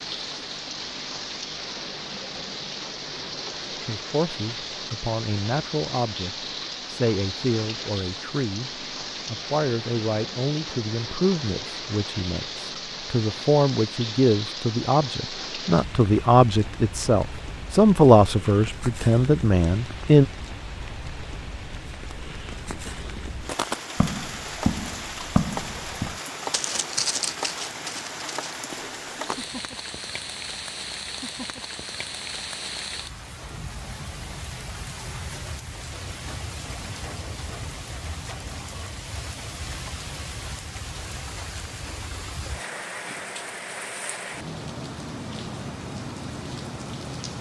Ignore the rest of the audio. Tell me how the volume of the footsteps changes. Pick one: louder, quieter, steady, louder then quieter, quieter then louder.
quieter.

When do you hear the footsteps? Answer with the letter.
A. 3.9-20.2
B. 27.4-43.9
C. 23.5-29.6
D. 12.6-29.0
C.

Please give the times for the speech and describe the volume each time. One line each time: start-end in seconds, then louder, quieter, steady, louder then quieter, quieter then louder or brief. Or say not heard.
3.9-20.2 louder.